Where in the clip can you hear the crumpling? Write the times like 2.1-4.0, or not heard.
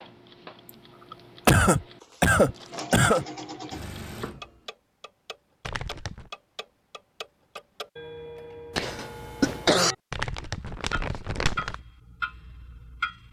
2.0-2.9, 5.6-6.3, 10.1-11.8.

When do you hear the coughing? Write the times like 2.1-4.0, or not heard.
1.1-3.2, 8.8-9.9.